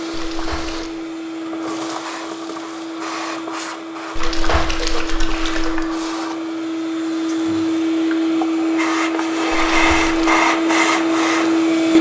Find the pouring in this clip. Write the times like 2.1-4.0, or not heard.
0.1-0.9, 4.2-5.8, 9.7-10.2.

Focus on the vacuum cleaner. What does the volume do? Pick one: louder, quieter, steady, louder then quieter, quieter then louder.
louder.